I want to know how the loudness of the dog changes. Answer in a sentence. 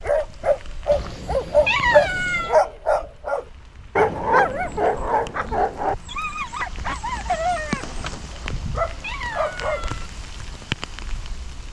The loudness of the dog goes down.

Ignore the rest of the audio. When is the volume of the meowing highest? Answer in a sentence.
The loudest moment of the meowing is at 2 seconds.